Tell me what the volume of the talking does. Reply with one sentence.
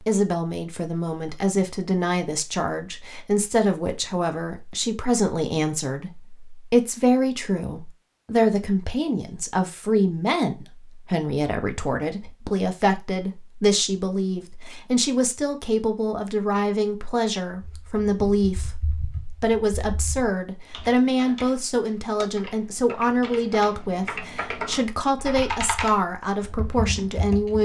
The loudness of the talking stays about the same.